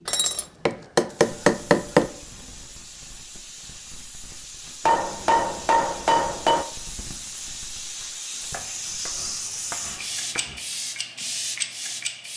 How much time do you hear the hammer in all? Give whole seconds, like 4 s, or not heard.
6 s.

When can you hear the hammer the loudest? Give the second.
2 s.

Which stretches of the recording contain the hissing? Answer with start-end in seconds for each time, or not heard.
0.0-12.3.